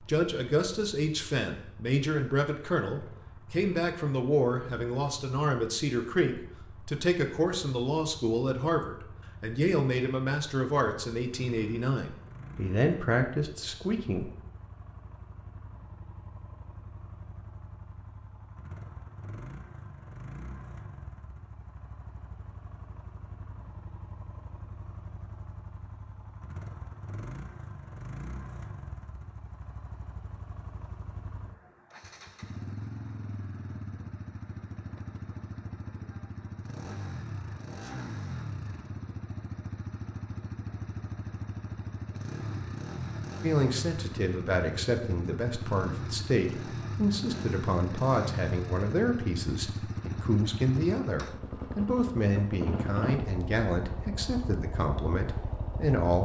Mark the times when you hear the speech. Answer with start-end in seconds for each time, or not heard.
0.1-14.3, 43.4-56.2.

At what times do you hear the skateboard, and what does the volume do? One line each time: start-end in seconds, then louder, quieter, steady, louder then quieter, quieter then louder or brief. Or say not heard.
not heard.